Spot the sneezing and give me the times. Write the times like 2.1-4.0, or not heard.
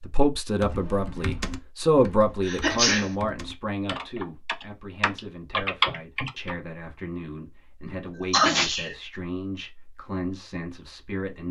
2.4-3.1, 7.8-8.9.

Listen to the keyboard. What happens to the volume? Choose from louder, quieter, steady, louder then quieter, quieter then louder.
quieter then louder.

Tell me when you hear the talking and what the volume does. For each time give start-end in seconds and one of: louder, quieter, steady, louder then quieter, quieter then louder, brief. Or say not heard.
0.0-11.4 quieter.